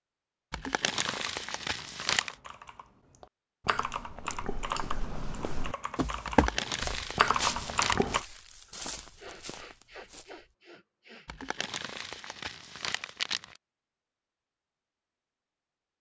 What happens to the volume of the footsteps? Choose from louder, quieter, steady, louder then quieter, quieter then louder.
louder then quieter.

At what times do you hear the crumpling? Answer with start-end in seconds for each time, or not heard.
0.5-2.4, 6.2-8.1, 11.2-13.6.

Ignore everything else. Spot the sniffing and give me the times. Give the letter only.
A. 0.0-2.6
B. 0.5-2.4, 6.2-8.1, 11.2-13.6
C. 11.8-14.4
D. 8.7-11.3
D.